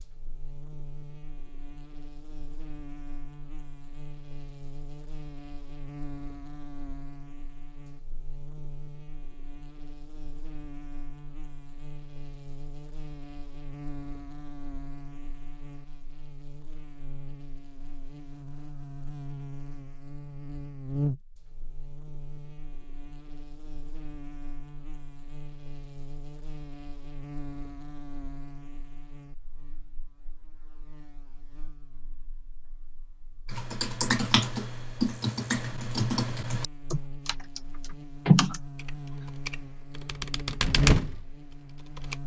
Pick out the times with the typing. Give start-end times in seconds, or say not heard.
33.5-42.1.